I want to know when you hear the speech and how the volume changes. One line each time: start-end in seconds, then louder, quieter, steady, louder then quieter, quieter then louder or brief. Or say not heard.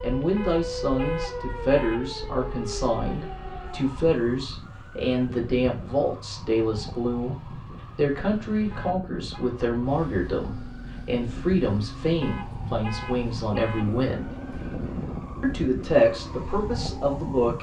0.0-14.3 steady
15.4-17.5 brief.